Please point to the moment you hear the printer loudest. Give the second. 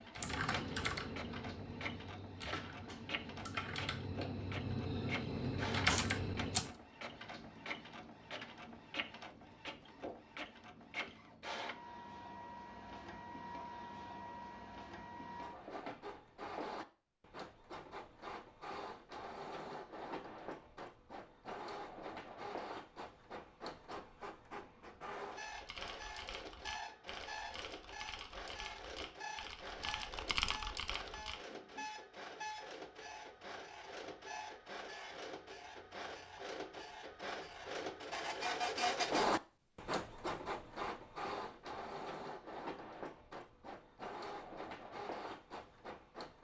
39 s.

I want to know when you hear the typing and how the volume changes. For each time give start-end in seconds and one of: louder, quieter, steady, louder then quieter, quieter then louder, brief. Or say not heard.
0.1-6.7 quieter then louder
25.4-31.9 louder.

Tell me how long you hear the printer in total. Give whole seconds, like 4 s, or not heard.
46 s.